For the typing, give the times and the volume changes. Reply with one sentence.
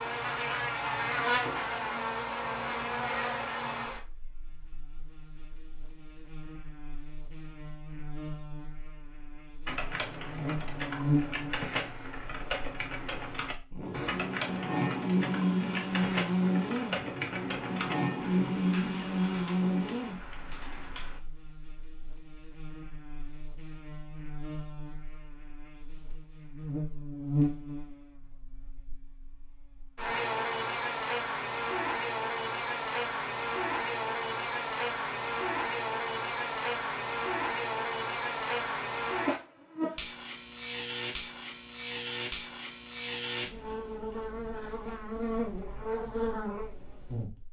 You can hear the typing from 9.7 to 21.2 s, getting quieter.